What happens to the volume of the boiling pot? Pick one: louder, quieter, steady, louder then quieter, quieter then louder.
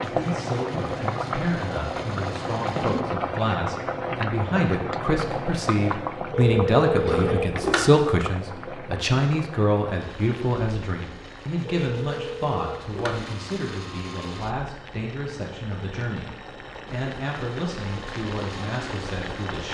quieter then louder.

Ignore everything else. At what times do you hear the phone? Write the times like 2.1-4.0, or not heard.
6.3-7.9, 11.7-13.2.